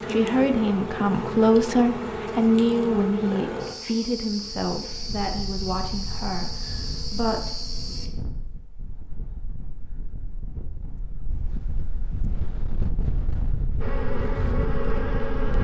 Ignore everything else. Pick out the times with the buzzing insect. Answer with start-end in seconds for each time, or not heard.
0.0-8.1, 13.8-15.5.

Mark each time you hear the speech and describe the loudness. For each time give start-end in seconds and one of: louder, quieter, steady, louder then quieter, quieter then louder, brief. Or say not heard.
0.1-7.5 quieter.